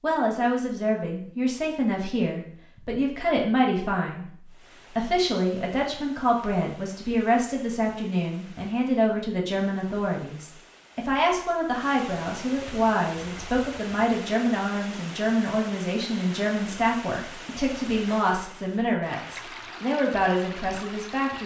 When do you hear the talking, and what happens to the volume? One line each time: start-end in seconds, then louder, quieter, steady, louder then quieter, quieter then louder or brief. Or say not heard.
0.0-21.4 steady.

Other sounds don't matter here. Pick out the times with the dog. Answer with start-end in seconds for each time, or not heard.
not heard.